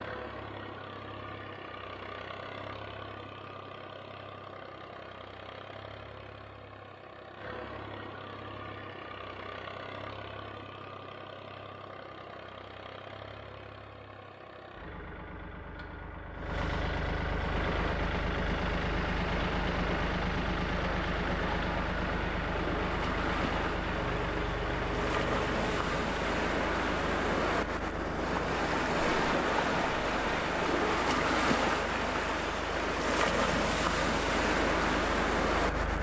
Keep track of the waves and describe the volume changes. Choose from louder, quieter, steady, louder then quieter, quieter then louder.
louder.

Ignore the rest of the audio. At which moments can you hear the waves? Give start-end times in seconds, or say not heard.
17.4-35.9.